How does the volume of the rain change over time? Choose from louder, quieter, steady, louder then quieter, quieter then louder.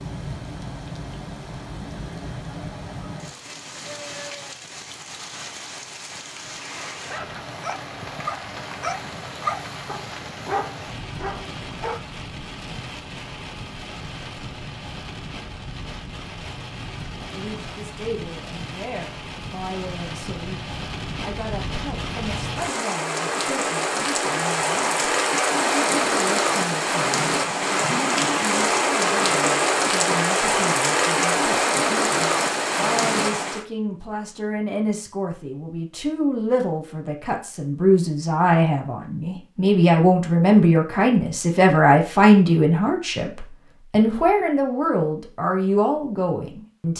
louder.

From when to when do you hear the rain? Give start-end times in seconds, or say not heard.
0.0-33.6.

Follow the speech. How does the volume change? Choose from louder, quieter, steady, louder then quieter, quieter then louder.
louder.